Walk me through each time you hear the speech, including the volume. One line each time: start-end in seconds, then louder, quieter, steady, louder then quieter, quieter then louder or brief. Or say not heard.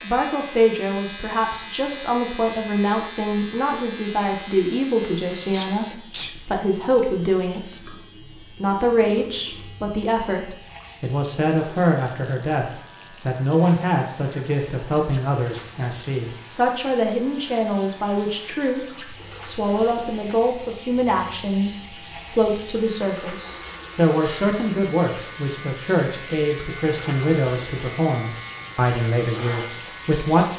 0.0-30.4 steady.